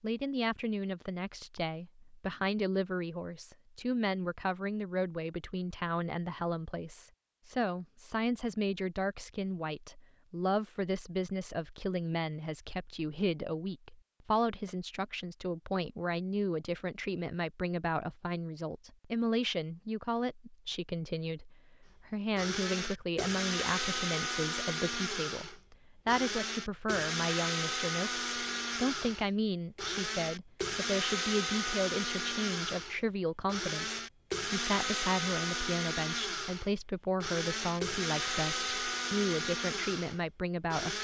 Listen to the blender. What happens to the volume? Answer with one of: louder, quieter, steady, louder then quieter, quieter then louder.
steady.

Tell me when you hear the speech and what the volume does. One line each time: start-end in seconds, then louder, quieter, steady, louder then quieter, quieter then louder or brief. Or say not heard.
0.0-40.9 steady.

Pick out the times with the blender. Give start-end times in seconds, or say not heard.
22.4-40.9.